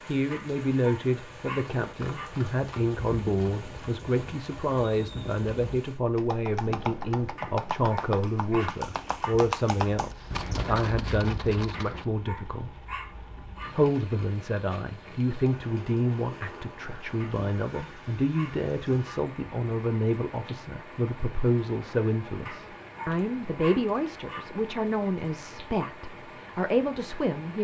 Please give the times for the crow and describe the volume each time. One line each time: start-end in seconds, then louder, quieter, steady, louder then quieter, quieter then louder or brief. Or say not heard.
not heard.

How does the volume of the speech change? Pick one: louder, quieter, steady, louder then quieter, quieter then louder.
steady.